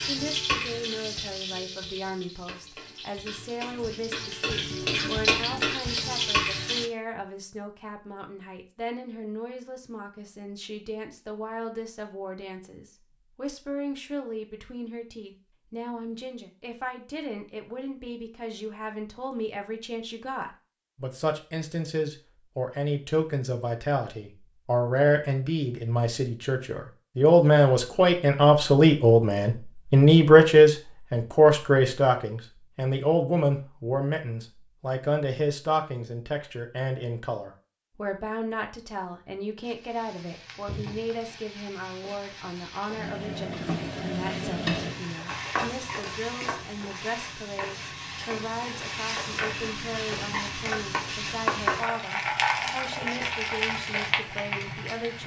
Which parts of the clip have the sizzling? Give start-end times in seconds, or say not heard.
0.0-6.9, 39.6-55.2.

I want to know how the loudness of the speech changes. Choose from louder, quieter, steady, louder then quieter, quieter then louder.
louder then quieter.